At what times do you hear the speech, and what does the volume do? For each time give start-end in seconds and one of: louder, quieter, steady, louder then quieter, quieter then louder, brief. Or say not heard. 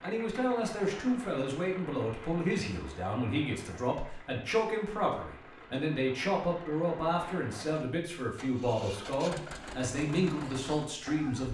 0.0-11.5 steady.